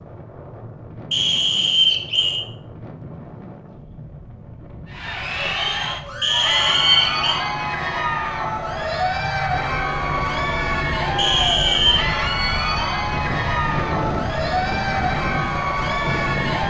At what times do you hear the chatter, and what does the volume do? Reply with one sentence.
You can hear the chatter from 4.8 to 16.6 s, at a steady volume.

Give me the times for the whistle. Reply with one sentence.
You can hear the whistle from 1.1 to 2.5 s, from 6.2 to 7.4 s and from 11.2 to 12.1 s.